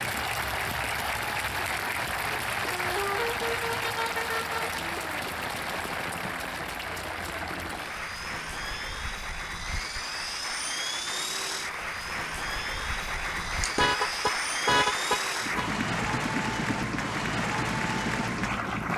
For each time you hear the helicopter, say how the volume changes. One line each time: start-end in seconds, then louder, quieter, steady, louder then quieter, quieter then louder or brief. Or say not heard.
0.0-18.9 louder.